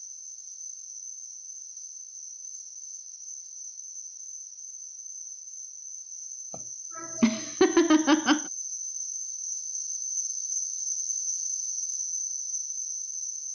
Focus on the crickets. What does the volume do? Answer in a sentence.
The loudness of the crickets goes up.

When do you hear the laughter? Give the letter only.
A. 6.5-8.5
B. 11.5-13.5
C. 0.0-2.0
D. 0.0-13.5
A.